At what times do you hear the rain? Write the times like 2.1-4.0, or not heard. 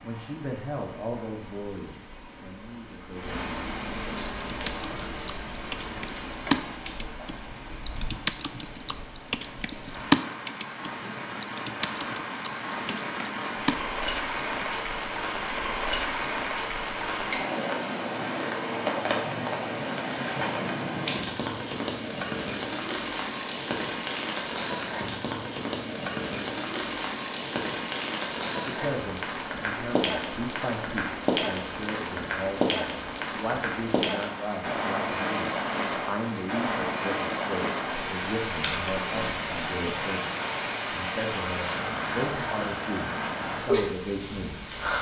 0.0-44.9.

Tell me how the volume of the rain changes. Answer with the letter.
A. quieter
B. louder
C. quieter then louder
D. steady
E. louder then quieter
B.